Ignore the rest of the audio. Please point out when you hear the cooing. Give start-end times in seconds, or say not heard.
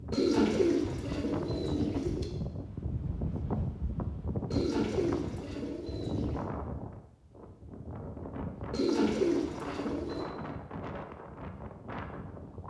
0.1-2.3, 4.5-6.5, 8.7-10.3.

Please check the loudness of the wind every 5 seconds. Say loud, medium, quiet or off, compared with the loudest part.
loud, loud, medium.